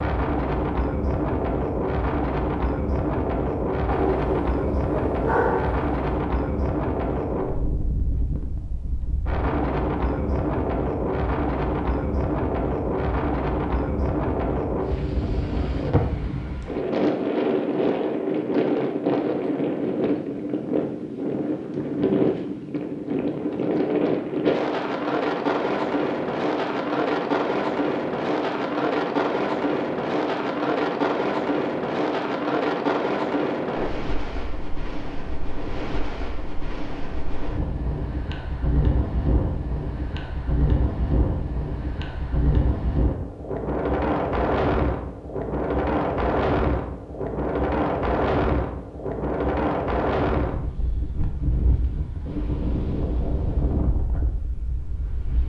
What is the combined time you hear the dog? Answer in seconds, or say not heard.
2 s.